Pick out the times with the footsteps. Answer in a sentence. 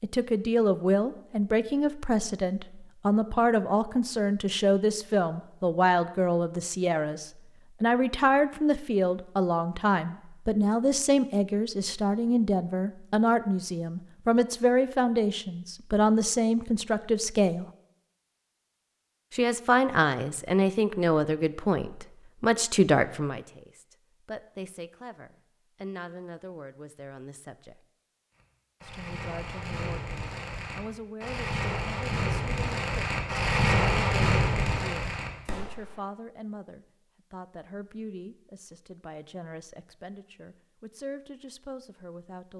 You can't hear the footsteps here.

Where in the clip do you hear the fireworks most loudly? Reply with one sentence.
The loudest moment of the fireworks is at 34 seconds.